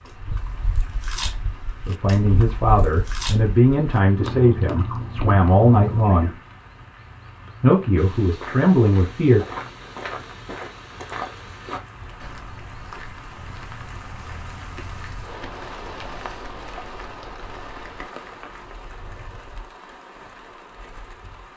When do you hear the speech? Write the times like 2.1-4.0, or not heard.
1.9-6.3, 7.6-9.4.